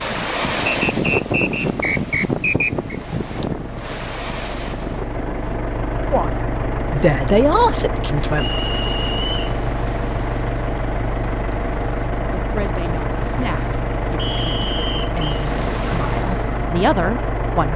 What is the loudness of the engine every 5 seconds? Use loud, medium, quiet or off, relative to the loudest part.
medium, loud, loud, loud.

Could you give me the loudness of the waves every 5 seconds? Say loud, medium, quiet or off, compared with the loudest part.
loud, quiet, quiet, medium.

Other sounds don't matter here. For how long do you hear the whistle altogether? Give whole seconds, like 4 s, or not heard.
4 s.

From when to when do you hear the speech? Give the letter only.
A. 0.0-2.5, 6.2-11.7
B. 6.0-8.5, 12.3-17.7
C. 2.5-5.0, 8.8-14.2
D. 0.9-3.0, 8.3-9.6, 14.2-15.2
B.